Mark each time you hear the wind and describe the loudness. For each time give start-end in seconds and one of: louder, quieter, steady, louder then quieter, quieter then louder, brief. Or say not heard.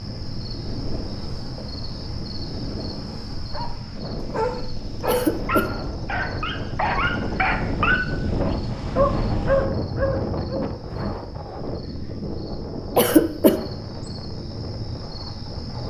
0.0-15.8 louder then quieter.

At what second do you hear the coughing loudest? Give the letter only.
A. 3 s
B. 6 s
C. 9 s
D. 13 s
D.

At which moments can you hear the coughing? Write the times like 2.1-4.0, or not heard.
5.0-5.7, 12.9-13.6.